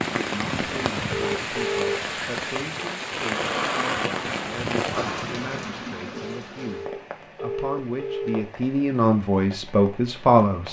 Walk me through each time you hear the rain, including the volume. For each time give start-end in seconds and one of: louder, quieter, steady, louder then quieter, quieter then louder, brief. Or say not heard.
0.0-10.6 quieter.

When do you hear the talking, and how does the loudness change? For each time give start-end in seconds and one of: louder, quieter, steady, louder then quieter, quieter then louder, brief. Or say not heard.
0.2-10.6 louder.